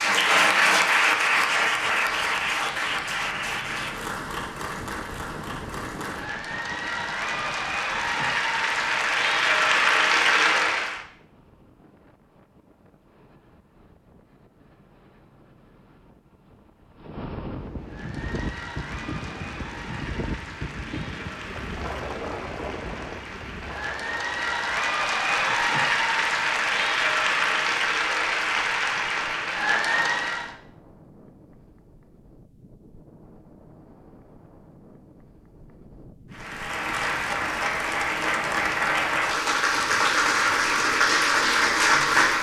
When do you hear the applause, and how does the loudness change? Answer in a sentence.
The applause can be heard from 0.0 to 11.0 s, getting quieter then louder; from 17.8 to 30.6 s, getting louder; and from 36.3 to 42.3 s, getting louder.